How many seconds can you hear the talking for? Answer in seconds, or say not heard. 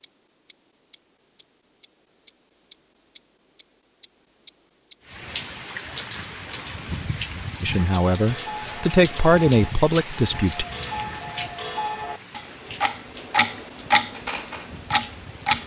3 s.